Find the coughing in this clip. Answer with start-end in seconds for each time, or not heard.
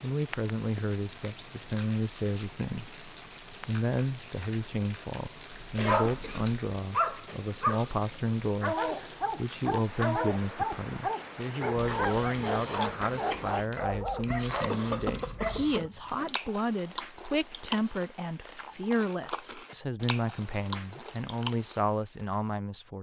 5.8-6.5, 14.7-15.9.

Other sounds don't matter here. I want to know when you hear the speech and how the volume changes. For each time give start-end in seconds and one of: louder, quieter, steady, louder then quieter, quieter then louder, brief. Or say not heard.
0.0-22.9 steady.